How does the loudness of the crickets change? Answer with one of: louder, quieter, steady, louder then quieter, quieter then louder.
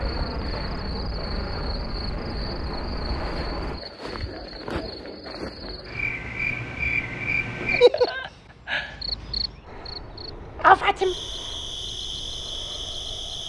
louder.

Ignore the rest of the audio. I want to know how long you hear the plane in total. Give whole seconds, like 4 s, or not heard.
8 s.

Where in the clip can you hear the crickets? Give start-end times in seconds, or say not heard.
0.0-13.4.